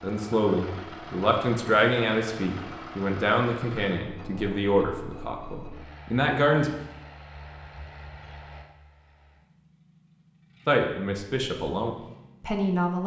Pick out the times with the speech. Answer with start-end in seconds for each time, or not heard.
0.0-6.8, 10.7-13.0.